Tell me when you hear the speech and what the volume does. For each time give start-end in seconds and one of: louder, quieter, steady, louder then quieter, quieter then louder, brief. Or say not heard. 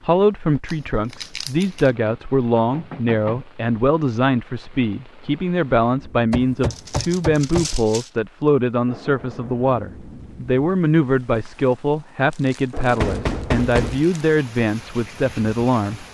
0.0-16.0 steady.